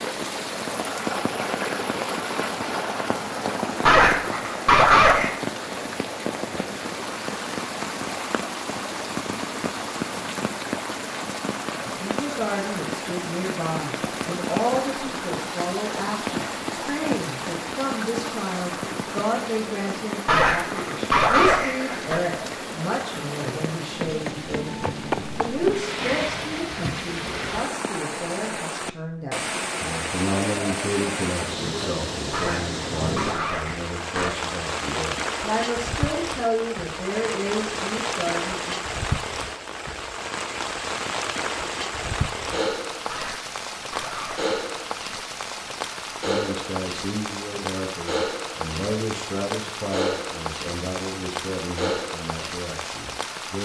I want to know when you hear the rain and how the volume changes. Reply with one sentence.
You can hear the rain from 0.0 to 53.6 s, at a steady volume.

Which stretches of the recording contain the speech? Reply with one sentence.
The speech can be heard from 11.8 to 38.8 s and from 46.2 to 53.6 s.